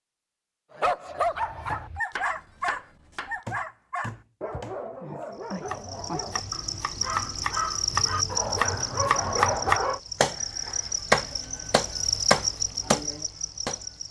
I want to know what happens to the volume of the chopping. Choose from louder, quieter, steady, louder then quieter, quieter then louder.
louder.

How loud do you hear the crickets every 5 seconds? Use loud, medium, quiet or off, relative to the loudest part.
off, loud, loud.